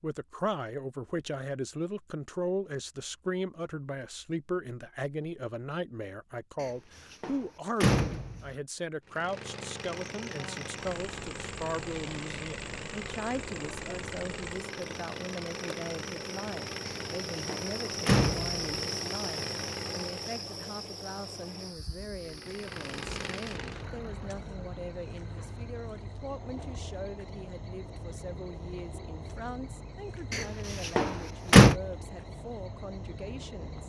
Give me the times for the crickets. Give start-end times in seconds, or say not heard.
9.9-33.8.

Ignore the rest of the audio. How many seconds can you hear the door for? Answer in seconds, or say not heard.
5 s.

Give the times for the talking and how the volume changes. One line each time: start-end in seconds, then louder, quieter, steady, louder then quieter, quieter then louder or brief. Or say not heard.
0.0-33.8 quieter.